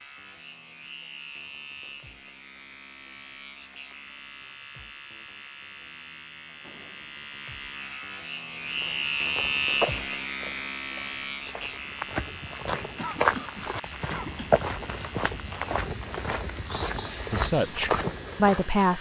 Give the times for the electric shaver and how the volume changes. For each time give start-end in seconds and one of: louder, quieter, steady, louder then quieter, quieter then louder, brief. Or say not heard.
0.0-18.9 louder then quieter.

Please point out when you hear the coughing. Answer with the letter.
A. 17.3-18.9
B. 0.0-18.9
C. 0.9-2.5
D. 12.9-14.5
D.